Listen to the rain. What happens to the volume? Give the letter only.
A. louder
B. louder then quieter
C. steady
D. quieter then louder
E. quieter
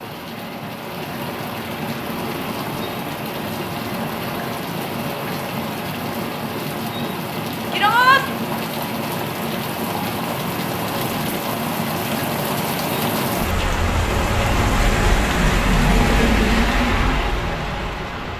A.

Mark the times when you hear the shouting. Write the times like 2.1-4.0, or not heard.
7.7-8.2.